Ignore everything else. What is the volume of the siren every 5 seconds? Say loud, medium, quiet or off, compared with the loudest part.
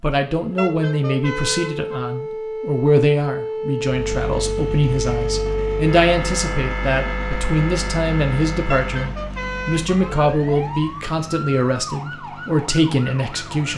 loud, loud, medium.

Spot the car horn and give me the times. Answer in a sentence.
You can hear the car horn from 0.6 to 2.0 s and from 8.7 to 10.1 s.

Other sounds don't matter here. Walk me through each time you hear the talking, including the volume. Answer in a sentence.
You can hear the talking from 0.0 to 13.7 s, at a steady volume.